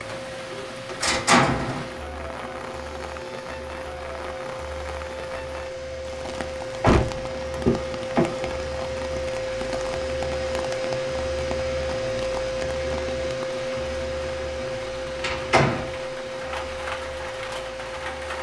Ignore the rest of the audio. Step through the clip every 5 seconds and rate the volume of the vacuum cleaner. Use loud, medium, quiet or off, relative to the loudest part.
medium, loud, loud, medium.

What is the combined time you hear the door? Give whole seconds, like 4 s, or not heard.
4 s.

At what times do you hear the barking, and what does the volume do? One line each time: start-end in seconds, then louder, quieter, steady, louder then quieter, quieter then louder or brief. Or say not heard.
not heard.